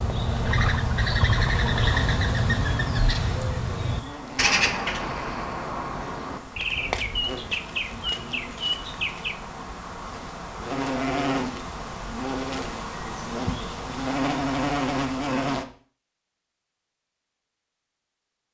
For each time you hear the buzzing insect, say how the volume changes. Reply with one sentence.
You can hear the buzzing insect from 1.8 to 15.7 s, getting louder.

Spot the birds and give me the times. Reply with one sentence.
You can hear the birds from 0.0 to 9.3 s.